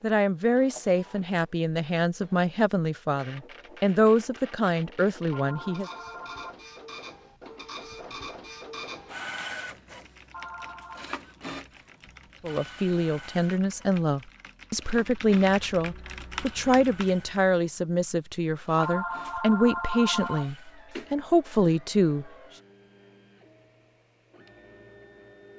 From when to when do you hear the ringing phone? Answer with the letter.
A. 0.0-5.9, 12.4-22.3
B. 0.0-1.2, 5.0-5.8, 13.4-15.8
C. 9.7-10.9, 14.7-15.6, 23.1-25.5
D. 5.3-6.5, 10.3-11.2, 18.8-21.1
D.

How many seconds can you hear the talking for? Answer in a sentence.
You can hear the talking for 16 seconds altogether.